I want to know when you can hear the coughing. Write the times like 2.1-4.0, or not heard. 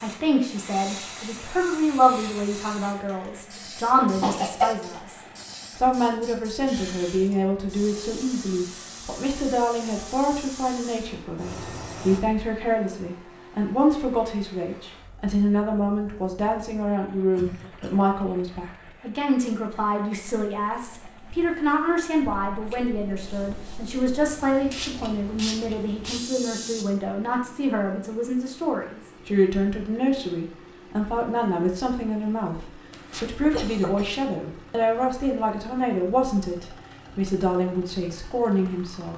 4.0-4.8, 17.3-18.1, 32.9-34.1.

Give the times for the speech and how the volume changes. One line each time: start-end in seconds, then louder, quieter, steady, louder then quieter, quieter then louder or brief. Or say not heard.
0.0-39.1 steady.